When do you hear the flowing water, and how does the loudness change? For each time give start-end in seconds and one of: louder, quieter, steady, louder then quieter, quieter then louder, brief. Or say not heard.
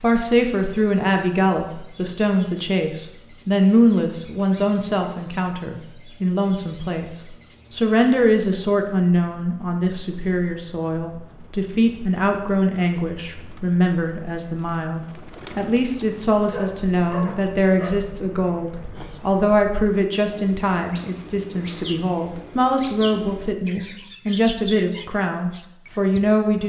not heard.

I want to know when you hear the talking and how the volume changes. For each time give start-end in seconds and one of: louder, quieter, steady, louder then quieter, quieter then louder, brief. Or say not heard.
0.0-26.6 steady.